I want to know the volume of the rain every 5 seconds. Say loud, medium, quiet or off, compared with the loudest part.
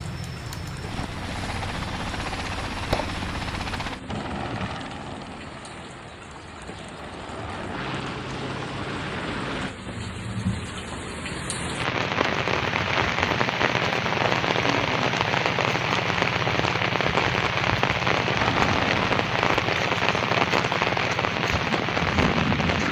quiet, quiet, loud, loud, loud.